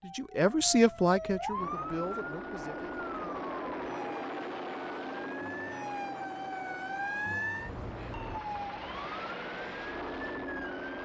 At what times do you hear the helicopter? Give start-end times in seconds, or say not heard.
1.5-11.0.